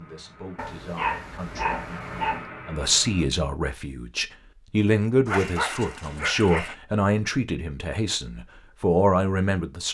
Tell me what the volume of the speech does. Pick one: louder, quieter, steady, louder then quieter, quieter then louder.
louder.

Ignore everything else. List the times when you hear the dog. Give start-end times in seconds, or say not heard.
0.6-2.5, 5.2-6.8.